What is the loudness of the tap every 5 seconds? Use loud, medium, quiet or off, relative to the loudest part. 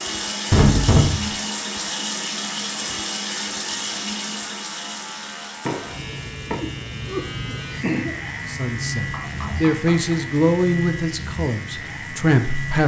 loud, quiet, quiet.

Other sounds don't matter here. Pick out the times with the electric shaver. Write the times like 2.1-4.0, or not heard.
0.0-12.8.